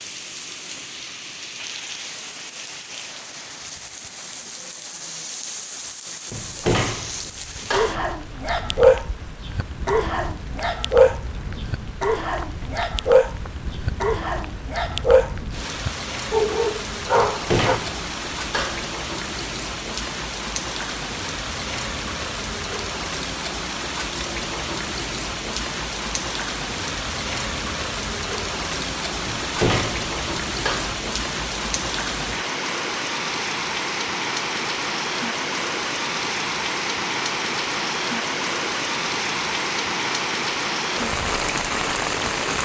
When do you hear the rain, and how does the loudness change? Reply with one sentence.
The rain can be heard from 0.0 to 42.6 s, getting louder.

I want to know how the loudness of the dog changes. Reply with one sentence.
The volume of the dog stays about the same.